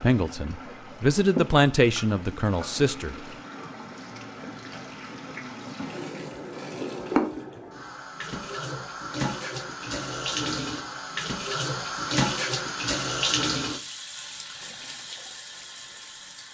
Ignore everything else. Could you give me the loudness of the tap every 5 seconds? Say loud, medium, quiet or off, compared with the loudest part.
medium, loud, loud, quiet.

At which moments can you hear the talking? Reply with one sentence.
The talking can be heard from 0.0 to 3.1 s.